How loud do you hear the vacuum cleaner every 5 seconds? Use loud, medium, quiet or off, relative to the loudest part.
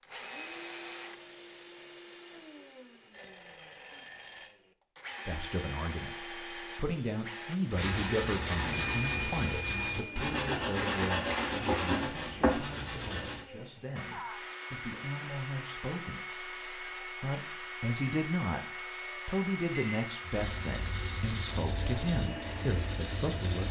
medium, loud, loud, loud, loud.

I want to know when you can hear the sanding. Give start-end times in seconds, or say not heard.
7.7-13.4, 20.3-23.6.